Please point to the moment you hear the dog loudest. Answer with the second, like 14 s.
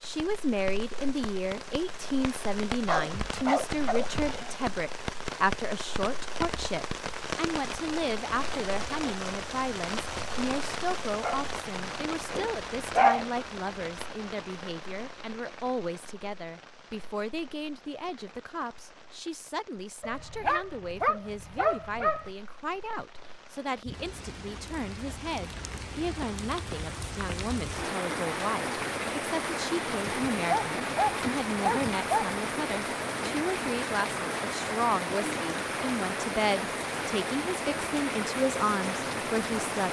13 s.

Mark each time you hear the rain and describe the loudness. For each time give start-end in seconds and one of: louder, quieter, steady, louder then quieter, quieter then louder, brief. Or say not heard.
0.0-39.8 quieter then louder.